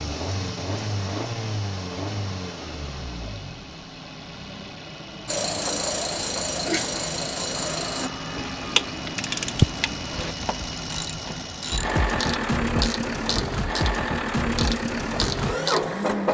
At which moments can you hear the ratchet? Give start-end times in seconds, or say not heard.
5.2-16.0.